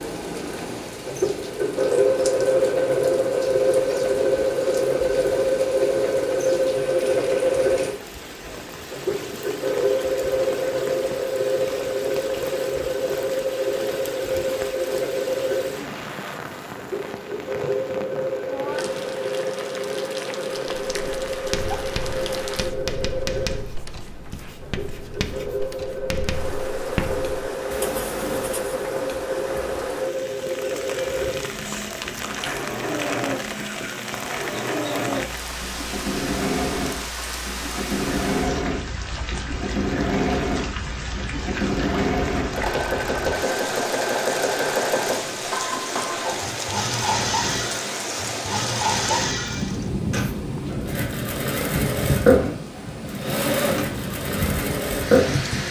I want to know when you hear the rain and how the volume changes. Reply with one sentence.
The rain can be heard from 0.0 to 55.6 s, getting louder.